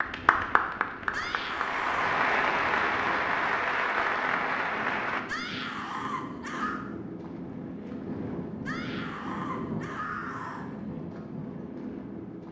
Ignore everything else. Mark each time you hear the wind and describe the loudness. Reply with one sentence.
You can hear the wind from 0.0 to 12.4 s, getting louder.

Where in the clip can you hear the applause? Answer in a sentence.
You can hear the applause from 0.0 to 5.2 s.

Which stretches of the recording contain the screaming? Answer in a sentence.
You can hear the screaming from 1.1 to 2.1 s, from 5.2 to 6.8 s and from 8.7 to 10.7 s.